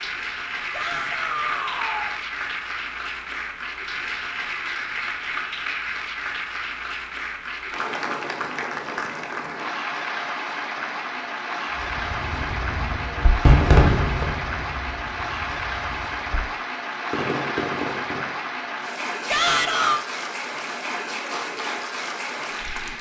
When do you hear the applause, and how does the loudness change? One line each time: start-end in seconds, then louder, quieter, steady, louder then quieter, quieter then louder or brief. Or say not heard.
0.0-22.9 steady.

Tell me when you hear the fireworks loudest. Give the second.
14 s.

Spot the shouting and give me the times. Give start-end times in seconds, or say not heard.
0.7-2.2, 19.2-20.0.